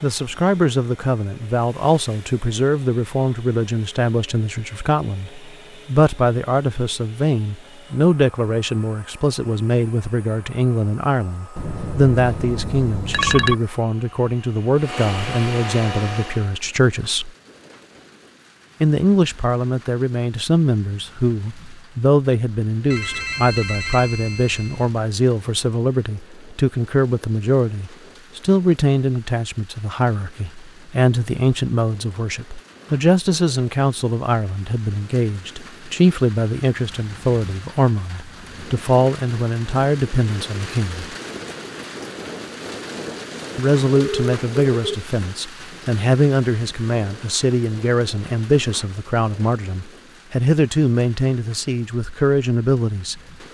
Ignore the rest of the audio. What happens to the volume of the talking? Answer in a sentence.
The volume of the talking stays about the same.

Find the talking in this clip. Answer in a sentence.
The talking can be heard from 0.0 to 17.3 s, from 18.8 to 41.1 s and from 43.5 to 53.2 s.